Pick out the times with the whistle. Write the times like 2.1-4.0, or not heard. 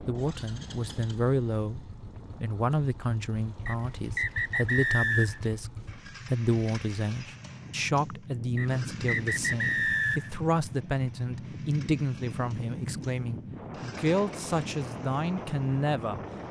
3.6-5.5, 8.6-10.3.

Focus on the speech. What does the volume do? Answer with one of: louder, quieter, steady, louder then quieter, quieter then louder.
steady.